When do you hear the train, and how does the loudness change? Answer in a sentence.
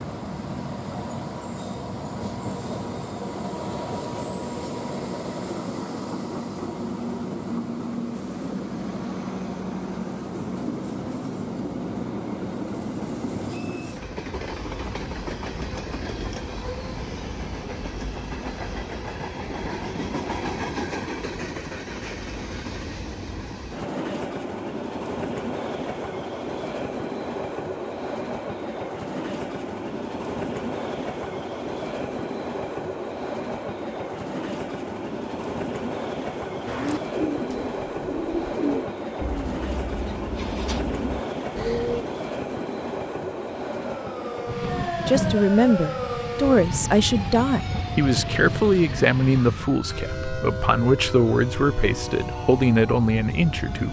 The train can be heard from 0.0 to 53.8 s, at a steady volume.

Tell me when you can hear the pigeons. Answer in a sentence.
You can hear the pigeons from 36.6 to 42.0 s.